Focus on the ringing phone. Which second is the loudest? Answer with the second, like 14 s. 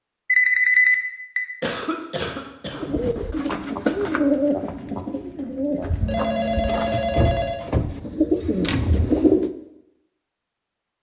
1 s.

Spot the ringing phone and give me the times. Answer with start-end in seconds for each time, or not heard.
0.2-1.4, 6.0-7.7.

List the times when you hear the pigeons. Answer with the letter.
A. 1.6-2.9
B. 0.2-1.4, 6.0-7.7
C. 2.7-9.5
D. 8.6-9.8
C.